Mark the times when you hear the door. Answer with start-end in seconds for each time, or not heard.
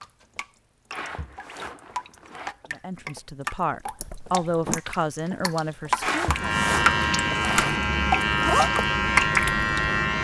4.0-4.8.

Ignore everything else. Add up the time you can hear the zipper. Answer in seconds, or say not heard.
4 s.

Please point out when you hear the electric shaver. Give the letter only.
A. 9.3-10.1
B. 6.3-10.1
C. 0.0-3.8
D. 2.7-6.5
B.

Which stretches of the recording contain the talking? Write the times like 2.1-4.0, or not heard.
2.7-6.5.